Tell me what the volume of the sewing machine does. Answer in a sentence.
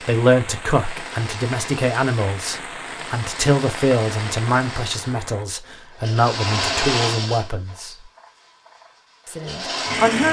The loudness of the sewing machine goes up, then down.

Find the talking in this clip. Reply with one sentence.
The talking can be heard from 0.0 to 8.0 s and from 9.2 to 10.2 s.